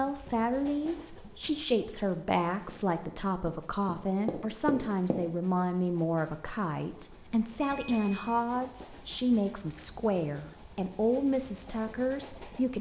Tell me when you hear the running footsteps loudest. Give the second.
5 s.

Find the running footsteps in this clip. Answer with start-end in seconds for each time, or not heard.
2.6-5.2.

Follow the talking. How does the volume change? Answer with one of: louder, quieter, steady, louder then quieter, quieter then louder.
steady.